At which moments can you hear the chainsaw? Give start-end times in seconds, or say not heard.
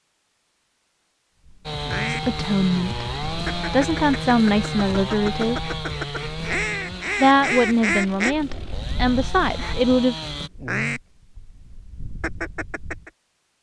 1.6-10.5.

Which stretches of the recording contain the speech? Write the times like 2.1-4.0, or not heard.
2.0-5.8, 7.2-10.2.